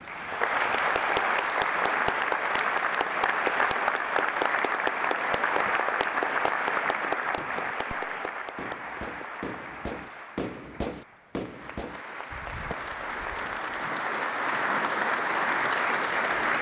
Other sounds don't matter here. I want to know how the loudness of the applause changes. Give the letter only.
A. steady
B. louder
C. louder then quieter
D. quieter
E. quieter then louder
E.